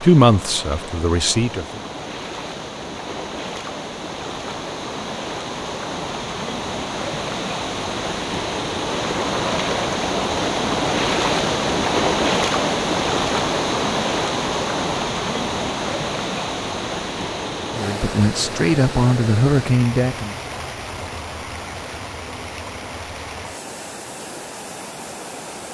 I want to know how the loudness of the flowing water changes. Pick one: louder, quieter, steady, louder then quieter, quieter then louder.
louder then quieter.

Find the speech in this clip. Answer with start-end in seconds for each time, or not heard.
0.0-1.8, 17.7-20.4.